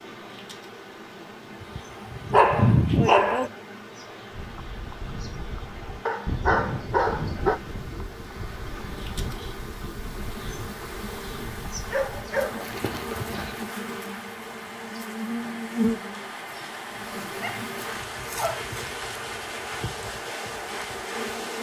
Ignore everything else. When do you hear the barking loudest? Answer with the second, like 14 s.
3 s.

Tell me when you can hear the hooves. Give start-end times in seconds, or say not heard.
4.3-13.7.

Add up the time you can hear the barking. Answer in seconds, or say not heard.
7 s.